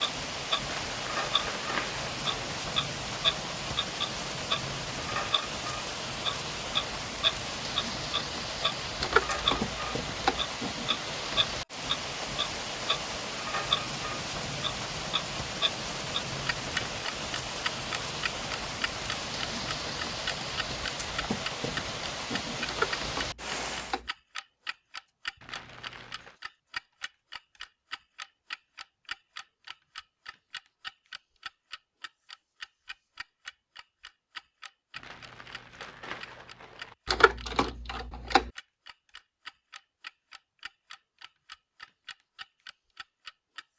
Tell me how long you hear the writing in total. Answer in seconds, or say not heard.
not heard.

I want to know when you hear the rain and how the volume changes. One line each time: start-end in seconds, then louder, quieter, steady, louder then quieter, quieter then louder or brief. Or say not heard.
0.0-24.0 steady.